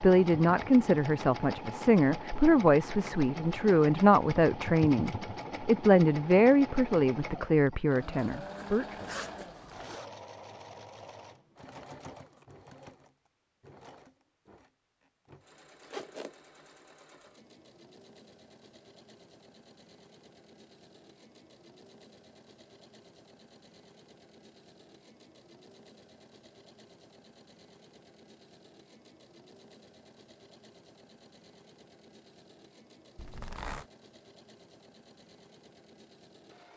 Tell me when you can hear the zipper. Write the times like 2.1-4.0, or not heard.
8.4-10.1, 15.8-16.4, 33.1-33.9.